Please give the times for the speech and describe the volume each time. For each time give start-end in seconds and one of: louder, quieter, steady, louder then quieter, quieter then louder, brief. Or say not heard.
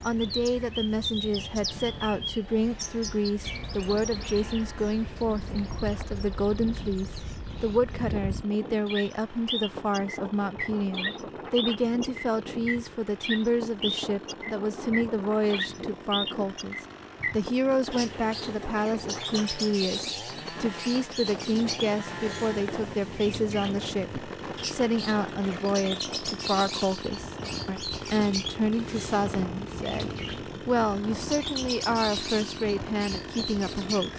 0.0-34.1 steady.